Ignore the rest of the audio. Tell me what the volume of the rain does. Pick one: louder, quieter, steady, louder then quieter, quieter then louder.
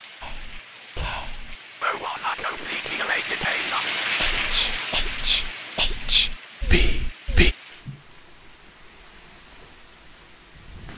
louder then quieter.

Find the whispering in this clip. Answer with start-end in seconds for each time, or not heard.
0.2-7.5.